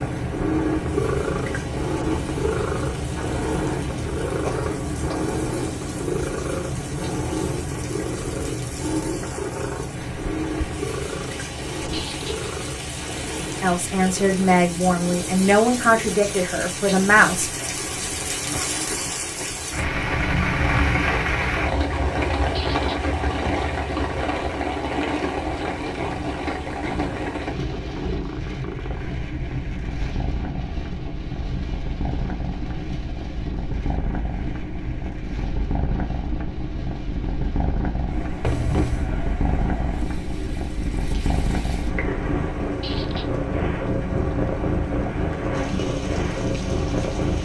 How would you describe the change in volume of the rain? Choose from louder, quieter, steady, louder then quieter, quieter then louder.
louder then quieter.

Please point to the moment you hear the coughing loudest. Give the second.
39 s.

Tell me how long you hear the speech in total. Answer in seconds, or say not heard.
4 s.